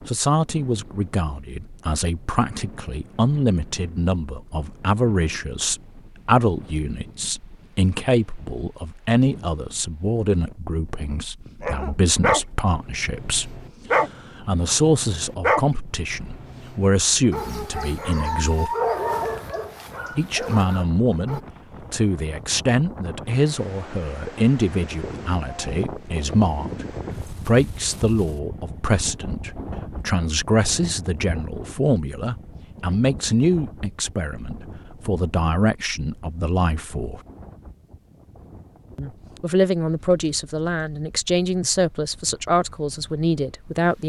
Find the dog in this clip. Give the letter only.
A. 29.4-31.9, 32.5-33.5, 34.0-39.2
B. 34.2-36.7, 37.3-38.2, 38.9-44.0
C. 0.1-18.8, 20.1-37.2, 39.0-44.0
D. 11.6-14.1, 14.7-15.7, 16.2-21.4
D.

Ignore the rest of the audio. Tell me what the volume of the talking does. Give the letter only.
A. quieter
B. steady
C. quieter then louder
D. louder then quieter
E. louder
B.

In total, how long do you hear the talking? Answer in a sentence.
You can hear the talking for 41 seconds altogether.